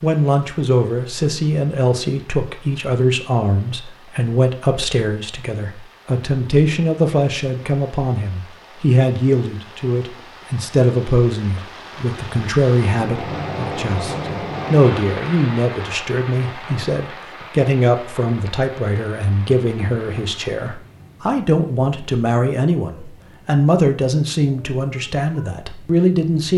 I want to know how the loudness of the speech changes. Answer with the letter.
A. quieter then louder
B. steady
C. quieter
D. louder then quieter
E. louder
B.